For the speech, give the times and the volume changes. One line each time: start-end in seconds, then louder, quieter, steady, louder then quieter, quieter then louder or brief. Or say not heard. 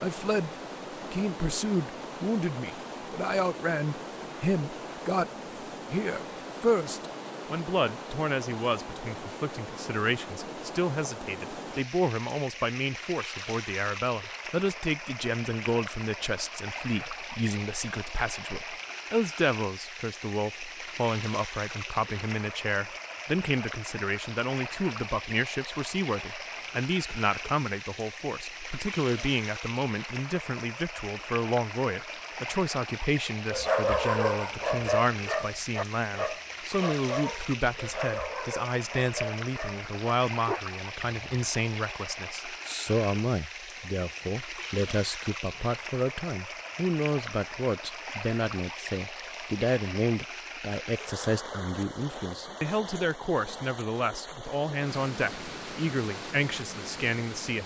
0.0-0.5 brief
1.1-5.3 steady
5.9-57.6 steady.